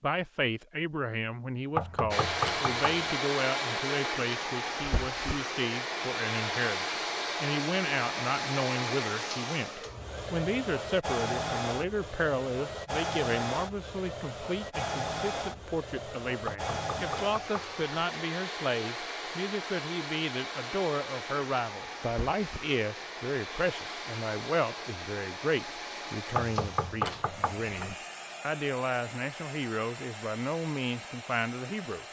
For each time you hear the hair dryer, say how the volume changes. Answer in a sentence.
The hair dryer can be heard from 2.1 to 32.0 s, getting quieter.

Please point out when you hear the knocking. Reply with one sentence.
The knocking can be heard from 1.8 to 3.1 s, from 16.4 to 17.9 s and from 26.4 to 27.9 s.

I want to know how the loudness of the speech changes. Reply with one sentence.
The loudness of the speech stays about the same.